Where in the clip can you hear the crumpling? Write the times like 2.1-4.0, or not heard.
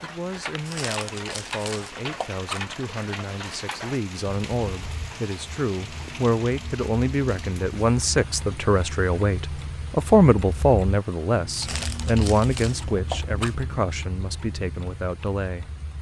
0.7-2.6, 11.6-13.6.